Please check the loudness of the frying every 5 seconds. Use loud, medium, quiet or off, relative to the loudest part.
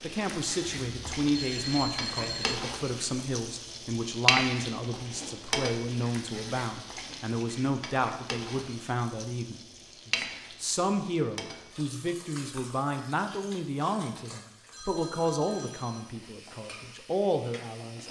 loud, medium, medium, quiet.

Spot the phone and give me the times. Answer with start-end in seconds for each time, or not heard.
0.9-2.6, 14.7-16.2.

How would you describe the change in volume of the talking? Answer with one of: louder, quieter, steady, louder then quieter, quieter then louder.
steady.